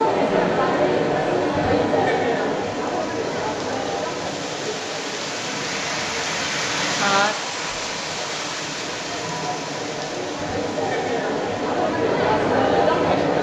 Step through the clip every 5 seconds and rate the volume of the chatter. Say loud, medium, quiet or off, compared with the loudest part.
loud, quiet, loud.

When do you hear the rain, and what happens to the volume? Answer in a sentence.
The rain can be heard from 0.0 to 13.3 s, getting louder then quieter.